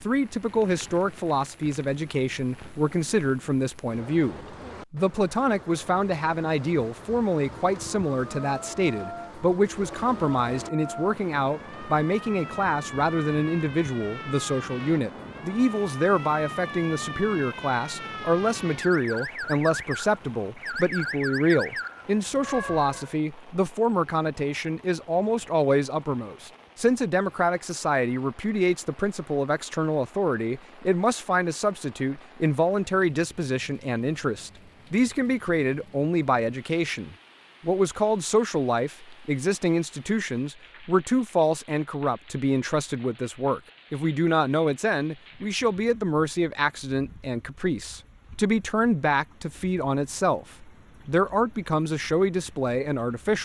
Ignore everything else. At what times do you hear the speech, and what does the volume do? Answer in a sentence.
The speech can be heard from 0.0 to 53.4 s, at a steady volume.